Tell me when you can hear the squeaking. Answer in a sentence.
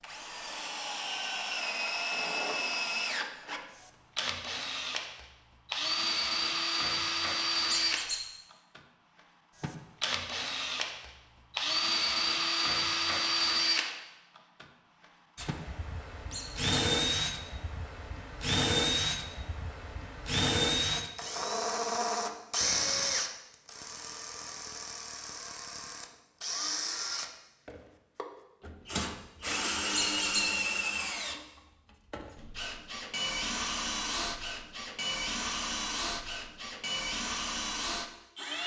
You can hear the squeaking from 7.7 to 8.2 s, from 16.3 to 16.8 s and from 29.9 to 30.4 s.